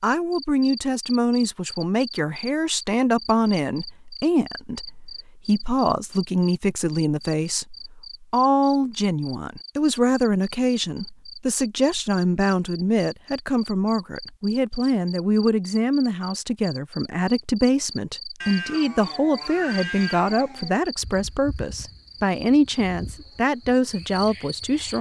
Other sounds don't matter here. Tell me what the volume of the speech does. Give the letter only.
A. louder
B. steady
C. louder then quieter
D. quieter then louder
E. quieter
B.